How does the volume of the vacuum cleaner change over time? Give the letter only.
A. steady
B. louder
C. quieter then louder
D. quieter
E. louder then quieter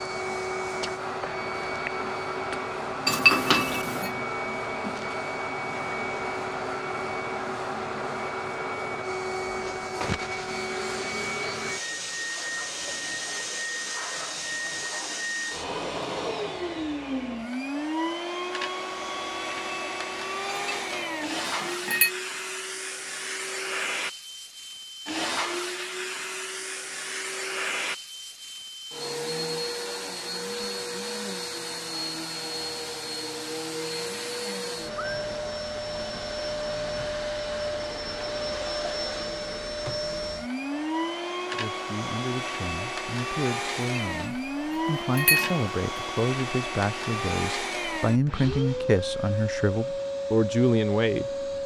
A.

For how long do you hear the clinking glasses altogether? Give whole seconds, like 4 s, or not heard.
4 s.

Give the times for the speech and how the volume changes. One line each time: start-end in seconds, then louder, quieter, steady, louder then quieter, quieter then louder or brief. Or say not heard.
41.5-51.5 louder.